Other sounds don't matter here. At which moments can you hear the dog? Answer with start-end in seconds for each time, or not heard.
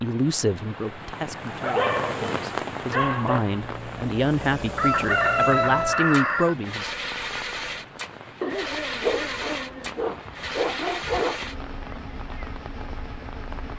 1.4-3.5, 8.4-11.4.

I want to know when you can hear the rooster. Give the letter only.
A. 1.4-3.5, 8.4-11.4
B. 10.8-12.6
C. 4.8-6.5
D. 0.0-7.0
C.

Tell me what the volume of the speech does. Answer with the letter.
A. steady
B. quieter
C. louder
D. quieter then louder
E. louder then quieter
D.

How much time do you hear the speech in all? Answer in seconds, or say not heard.
7 s.